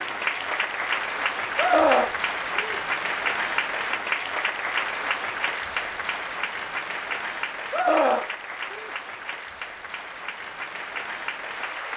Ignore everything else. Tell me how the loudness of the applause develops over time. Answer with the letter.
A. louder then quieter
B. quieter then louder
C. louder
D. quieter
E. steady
D.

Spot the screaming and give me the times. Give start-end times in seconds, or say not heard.
1.6-2.8, 7.7-8.9.